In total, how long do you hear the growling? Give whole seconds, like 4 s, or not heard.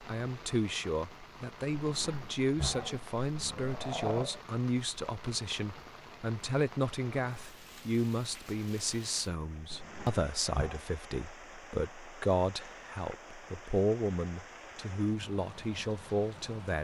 4 s.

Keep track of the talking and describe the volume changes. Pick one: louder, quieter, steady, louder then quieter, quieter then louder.
steady.